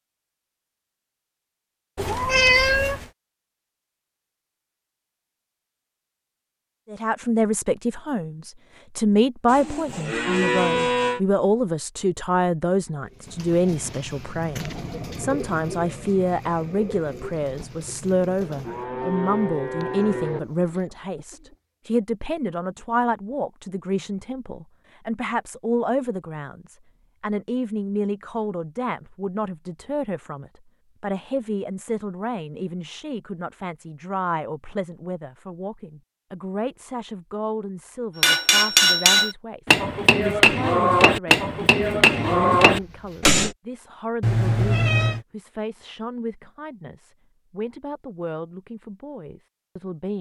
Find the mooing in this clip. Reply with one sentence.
You can hear the mooing from 9.4 to 11.2 s, from 18.4 to 20.4 s and from 42.0 to 43.3 s.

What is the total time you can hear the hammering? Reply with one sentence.
The hammering can be heard for 5 seconds in total.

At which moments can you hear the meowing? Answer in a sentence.
You can hear the meowing from 1.9 to 3.0 s and from 44.2 to 45.2 s.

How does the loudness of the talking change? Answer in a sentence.
The volume of the talking goes down.